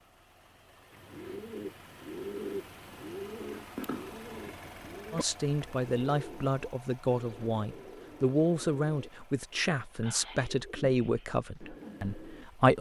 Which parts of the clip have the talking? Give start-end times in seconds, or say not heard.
5.1-12.7.